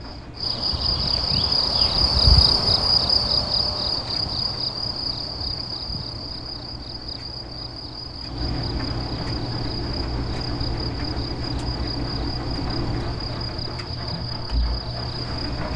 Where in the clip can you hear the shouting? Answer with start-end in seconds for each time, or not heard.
not heard.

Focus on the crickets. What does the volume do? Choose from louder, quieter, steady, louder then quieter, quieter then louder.
quieter.